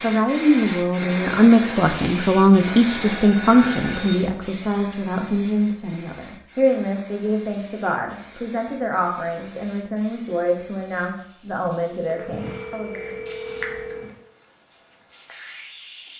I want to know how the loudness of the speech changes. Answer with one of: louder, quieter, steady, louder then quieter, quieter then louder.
quieter.